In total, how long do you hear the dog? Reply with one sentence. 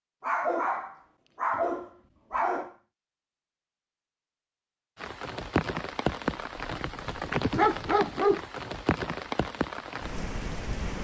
The dog can be heard for 5 seconds in total.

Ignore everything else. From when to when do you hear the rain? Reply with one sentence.
You can hear the rain from 5.0 to 10.9 s.